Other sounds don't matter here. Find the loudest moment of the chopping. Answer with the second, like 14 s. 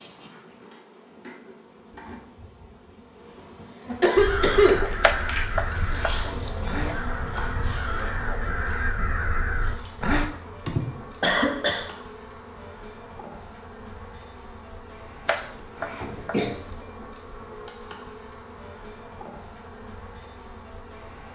5 s.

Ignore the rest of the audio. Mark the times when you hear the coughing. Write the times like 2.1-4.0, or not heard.
4.0-4.8, 10.7-11.8, 15.3-16.5.